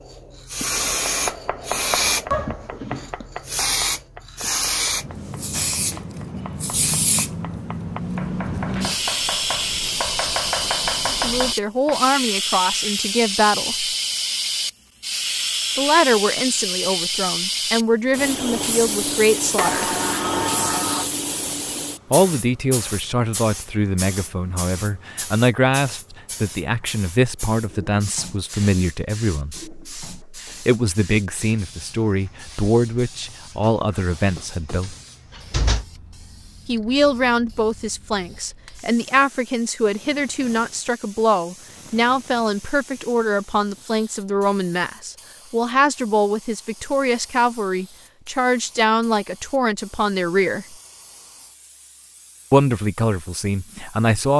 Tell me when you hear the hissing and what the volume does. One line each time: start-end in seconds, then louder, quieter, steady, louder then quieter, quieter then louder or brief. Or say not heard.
0.0-54.3 quieter.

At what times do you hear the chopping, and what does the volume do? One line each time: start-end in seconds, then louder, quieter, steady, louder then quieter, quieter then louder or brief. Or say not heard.
1.1-12.0 quieter then louder.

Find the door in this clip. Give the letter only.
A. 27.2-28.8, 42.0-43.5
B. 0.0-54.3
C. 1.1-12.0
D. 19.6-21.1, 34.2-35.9
D.